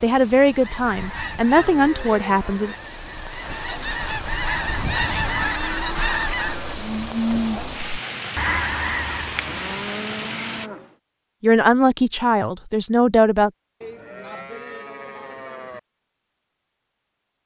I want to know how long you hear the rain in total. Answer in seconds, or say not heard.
11 s.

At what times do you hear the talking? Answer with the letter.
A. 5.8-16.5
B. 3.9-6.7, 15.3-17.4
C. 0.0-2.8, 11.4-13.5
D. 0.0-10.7
C.